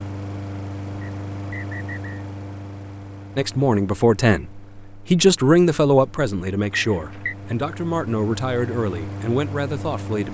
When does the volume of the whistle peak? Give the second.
7 s.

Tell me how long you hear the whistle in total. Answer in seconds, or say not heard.
2 s.